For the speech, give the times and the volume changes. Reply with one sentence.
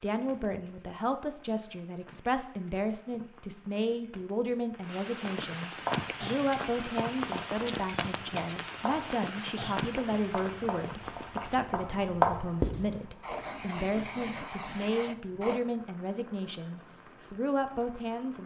You can hear the speech from 0.0 to 18.4 s, at a steady volume.